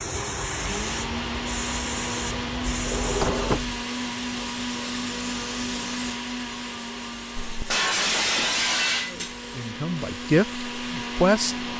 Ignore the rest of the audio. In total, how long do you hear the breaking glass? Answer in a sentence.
The breaking glass can be heard for 2 seconds in total.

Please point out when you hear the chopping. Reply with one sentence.
You can't hear the chopping here.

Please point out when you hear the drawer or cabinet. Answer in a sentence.
The drawer or cabinet can be heard from 2.6 to 3.9 s.